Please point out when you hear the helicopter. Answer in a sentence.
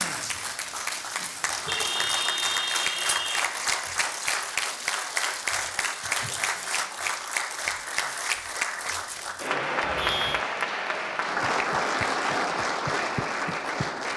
You can't hear the helicopter here.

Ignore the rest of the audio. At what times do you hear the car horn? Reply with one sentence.
You can hear the car horn from 1.6 to 3.5 s and from 9.8 to 10.4 s.